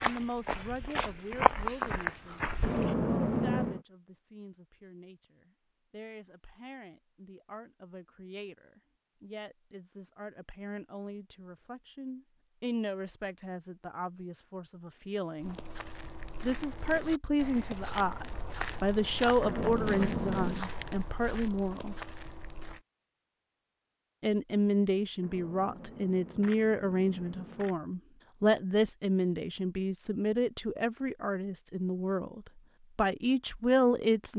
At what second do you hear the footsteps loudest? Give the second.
2 s.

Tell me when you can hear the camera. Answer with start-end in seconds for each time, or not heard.
2.6-3.8, 19.4-20.6, 25.2-27.8.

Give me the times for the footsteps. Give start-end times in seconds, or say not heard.
0.0-3.0, 15.3-22.8.